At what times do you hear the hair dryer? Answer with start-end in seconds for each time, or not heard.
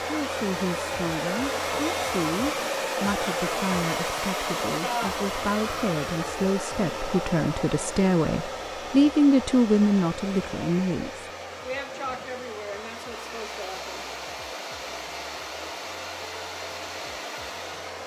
0.0-18.0.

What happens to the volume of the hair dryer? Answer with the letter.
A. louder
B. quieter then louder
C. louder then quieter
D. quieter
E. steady
D.